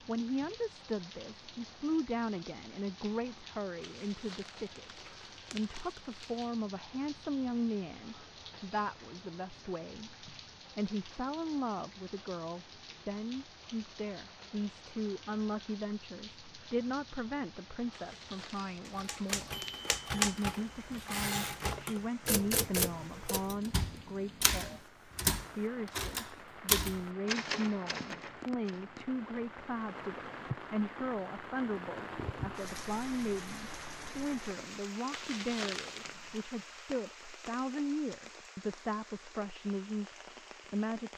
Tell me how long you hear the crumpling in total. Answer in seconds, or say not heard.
6 s.